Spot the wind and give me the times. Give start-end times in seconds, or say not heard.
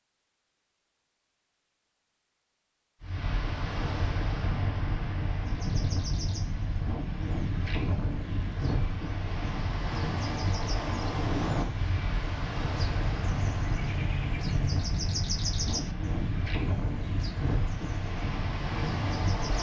3.0-19.5.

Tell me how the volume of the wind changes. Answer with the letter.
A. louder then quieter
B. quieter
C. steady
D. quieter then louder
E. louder
C.